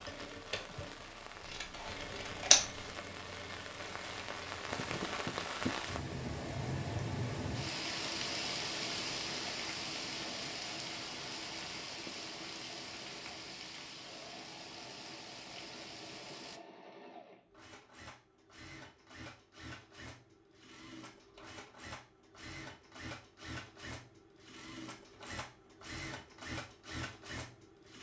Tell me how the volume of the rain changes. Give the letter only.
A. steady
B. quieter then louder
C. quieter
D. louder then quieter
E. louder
D.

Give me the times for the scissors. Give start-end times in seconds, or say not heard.
1.4-2.9.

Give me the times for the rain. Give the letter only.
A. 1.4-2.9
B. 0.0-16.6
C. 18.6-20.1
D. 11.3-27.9
B.